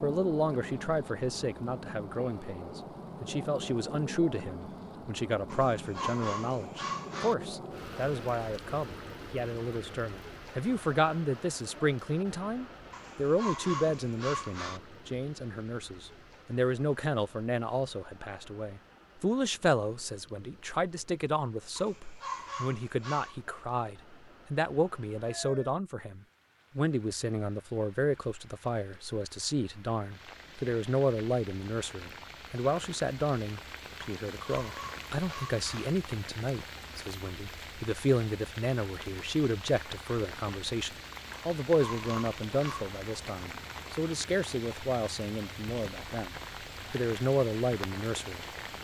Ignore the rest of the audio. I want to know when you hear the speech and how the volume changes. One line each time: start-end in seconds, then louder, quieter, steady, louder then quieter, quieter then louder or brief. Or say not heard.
0.0-48.5 steady.